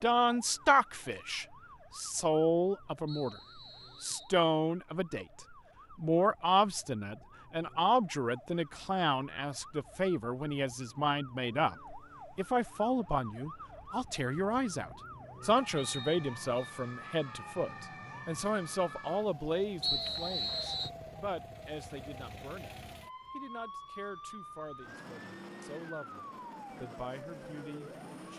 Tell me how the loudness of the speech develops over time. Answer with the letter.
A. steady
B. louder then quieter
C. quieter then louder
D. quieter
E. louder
D.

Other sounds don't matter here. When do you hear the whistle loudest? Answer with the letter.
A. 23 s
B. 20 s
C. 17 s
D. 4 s
B.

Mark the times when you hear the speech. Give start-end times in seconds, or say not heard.
0.0-3.4, 4.0-28.3.